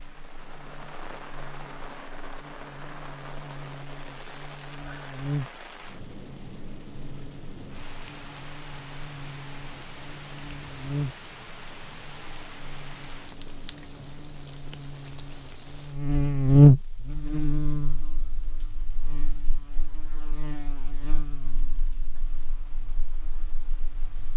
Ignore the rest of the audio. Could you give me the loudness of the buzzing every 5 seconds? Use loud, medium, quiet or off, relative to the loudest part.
quiet, quiet, quiet, loud, quiet.